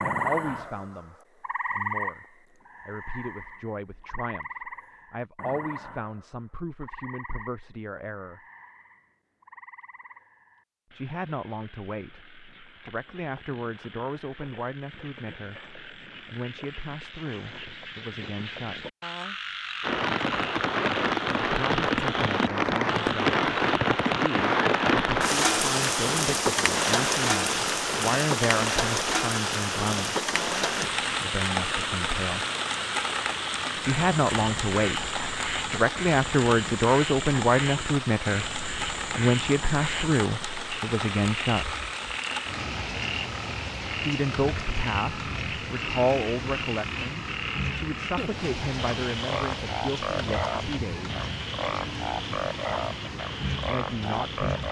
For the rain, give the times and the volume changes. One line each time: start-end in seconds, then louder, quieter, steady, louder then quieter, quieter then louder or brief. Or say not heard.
19.8-54.6 quieter.